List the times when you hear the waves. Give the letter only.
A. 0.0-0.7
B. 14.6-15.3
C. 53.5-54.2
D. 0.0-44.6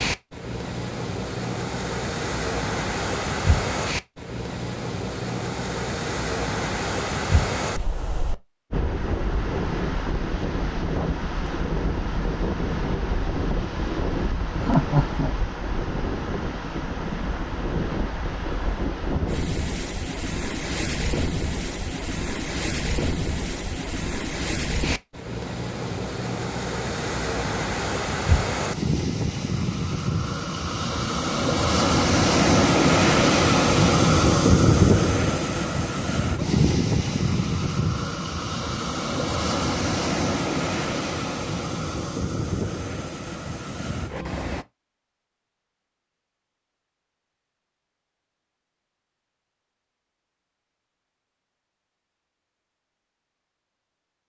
D.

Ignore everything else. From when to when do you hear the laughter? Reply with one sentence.
You can hear the laughter from 14.6 to 15.3 s.